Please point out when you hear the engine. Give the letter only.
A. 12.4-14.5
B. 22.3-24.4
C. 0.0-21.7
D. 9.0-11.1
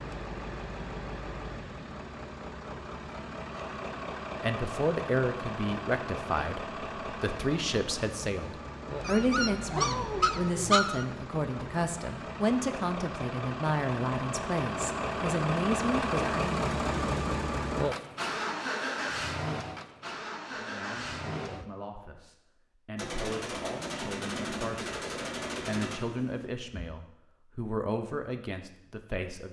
C.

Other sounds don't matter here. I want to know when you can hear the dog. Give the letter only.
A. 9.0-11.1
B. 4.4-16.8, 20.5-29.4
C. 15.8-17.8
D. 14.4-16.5
A.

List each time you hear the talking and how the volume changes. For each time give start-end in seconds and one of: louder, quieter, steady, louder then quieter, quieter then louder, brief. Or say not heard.
4.4-16.8 steady
20.5-29.4 louder.